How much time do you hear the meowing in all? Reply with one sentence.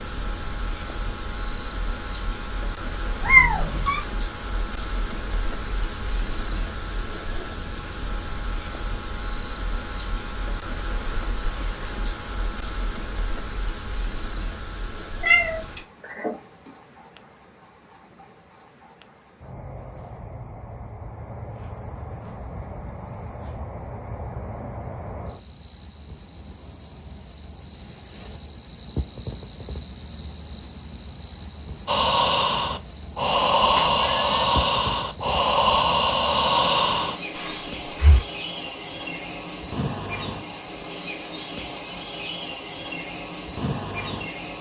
The meowing can be heard for 3 seconds in total.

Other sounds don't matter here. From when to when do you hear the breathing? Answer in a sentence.
The breathing can be heard from 31.9 to 38.2 s.